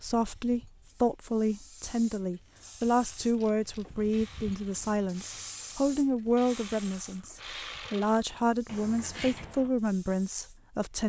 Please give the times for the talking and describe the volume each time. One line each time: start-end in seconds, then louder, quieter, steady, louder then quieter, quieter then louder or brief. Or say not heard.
0.0-11.0 steady.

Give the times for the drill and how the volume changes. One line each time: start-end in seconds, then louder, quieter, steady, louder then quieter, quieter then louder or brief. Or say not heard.
not heard.